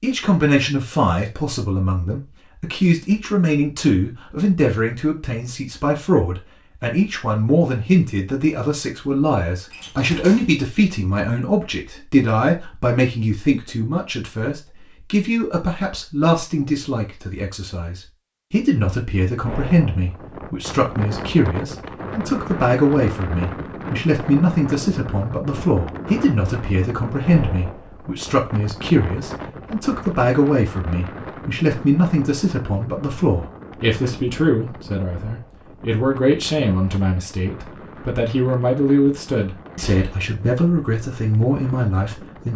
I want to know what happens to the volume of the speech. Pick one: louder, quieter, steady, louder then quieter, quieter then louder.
steady.